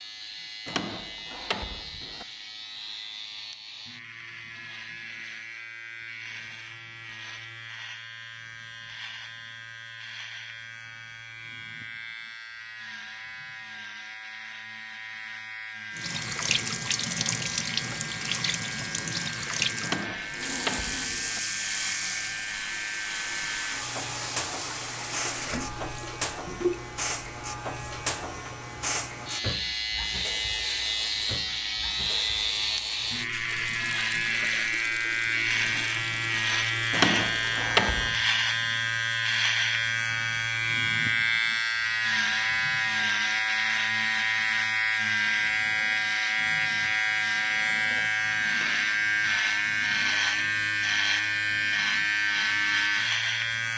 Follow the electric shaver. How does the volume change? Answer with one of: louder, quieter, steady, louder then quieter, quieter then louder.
louder.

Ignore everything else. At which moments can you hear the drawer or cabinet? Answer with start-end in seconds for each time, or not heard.
0.7-2.2, 19.8-21.4, 36.9-38.2.